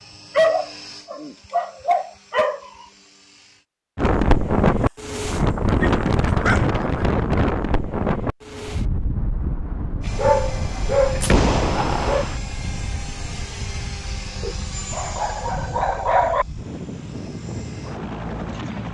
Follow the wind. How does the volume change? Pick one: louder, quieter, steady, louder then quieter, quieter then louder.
quieter.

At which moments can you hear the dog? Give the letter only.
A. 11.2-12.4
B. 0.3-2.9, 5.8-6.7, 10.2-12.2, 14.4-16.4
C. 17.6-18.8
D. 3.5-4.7
B.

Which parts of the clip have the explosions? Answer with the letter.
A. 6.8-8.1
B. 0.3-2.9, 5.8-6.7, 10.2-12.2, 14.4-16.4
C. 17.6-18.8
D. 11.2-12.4
D.